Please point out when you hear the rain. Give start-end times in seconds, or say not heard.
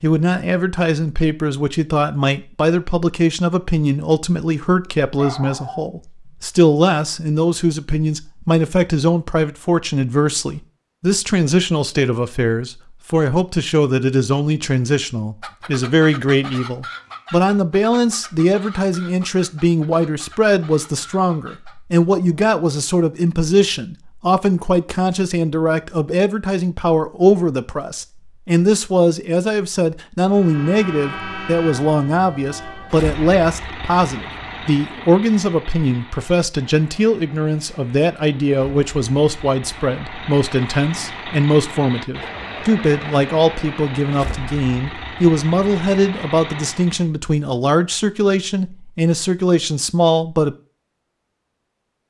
not heard.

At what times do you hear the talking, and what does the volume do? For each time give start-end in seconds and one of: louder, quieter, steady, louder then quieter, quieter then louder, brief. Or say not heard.
0.0-50.5 steady.